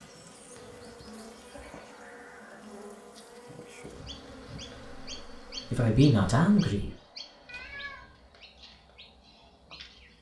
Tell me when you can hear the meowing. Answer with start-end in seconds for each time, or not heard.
1.2-2.7, 7.5-8.2.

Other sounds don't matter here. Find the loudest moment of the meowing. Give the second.
8 s.